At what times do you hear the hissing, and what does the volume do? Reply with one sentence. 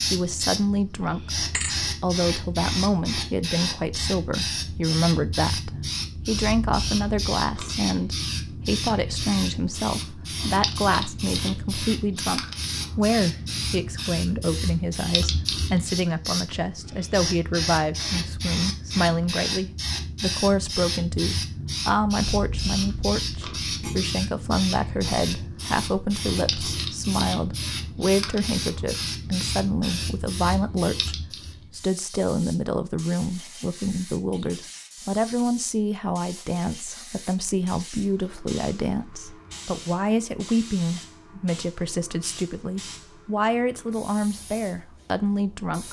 You can hear the hissing from 0.0 to 45.8 s, getting quieter.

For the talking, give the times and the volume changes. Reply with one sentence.
The talking can be heard from 0.0 to 45.8 s, at a steady volume.